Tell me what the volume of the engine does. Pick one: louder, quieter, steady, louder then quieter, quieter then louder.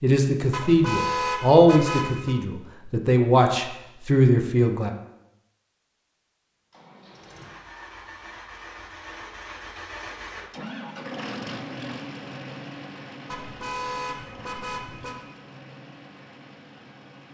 louder then quieter.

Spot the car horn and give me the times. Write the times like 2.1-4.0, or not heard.
0.5-2.4, 13.2-15.2.